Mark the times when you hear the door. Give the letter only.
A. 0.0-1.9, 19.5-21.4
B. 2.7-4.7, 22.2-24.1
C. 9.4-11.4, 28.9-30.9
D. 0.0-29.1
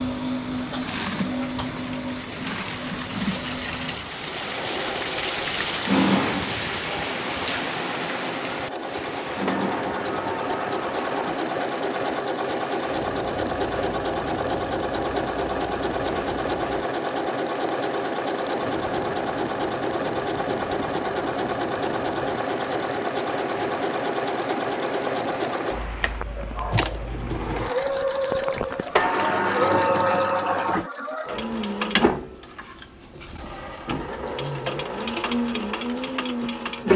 C.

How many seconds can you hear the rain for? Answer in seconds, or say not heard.
29 s.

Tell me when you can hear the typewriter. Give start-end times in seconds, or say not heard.
not heard.